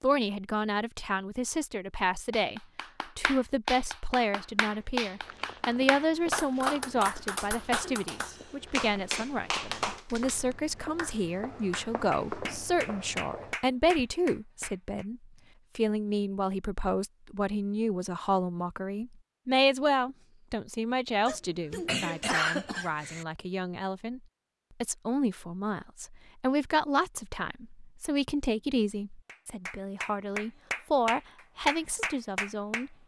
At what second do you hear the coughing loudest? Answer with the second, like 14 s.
22 s.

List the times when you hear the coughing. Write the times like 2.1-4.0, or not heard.
7.8-8.7, 21.2-23.2.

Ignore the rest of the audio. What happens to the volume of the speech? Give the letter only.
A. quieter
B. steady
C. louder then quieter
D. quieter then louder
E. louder
B.